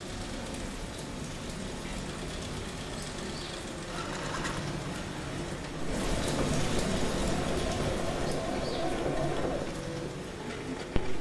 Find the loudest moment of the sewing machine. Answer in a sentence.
The volume of the sewing machine peaks at 9 seconds.